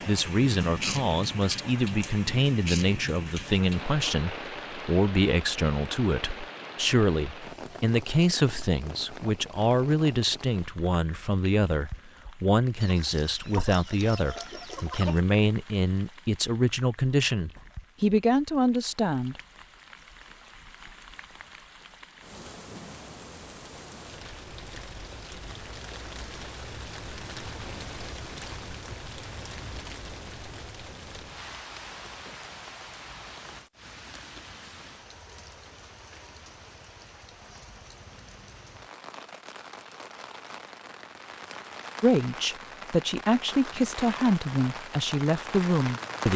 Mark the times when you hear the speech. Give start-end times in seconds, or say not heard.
0.1-19.4, 42.0-46.3.